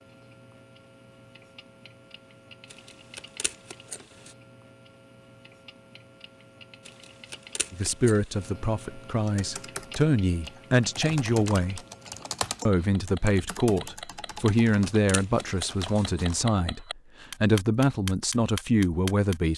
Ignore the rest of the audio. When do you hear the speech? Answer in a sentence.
You can hear the speech from 7.7 to 11.8 s and from 12.7 to 19.5 s.